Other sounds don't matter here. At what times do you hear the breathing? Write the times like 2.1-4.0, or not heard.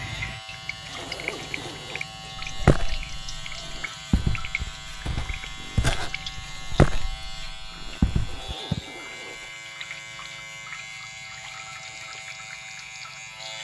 not heard.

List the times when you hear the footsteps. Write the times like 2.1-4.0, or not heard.
2.4-8.6.